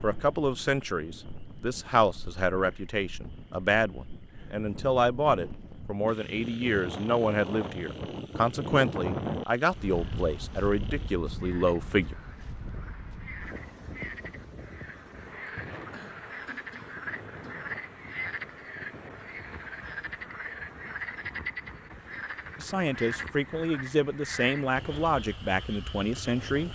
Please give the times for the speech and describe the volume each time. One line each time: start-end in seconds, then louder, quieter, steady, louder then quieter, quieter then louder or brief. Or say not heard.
0.0-12.2 steady
22.6-26.6 steady.